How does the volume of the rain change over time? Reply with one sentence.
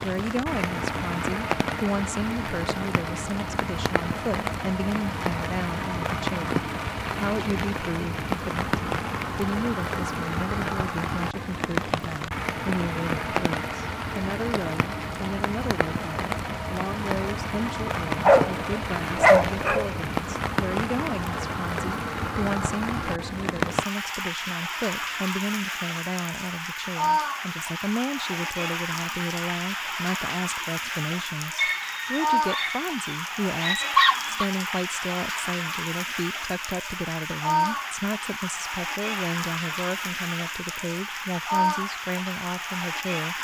The loudness of the rain stays about the same.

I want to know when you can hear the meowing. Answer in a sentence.
You can't hear the meowing here.